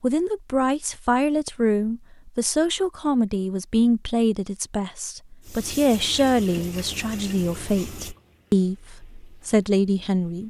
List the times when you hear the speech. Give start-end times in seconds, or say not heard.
0.0-10.4.